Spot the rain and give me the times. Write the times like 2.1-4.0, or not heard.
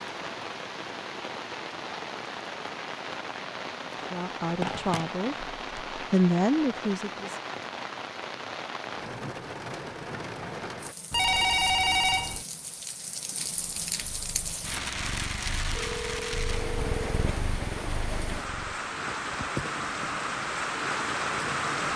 0.0-21.9.